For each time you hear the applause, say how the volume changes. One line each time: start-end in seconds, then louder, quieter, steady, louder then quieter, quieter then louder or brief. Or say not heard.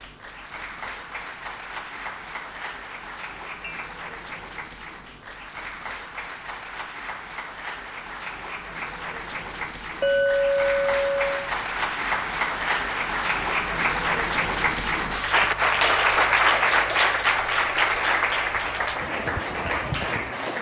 0.0-20.5 louder.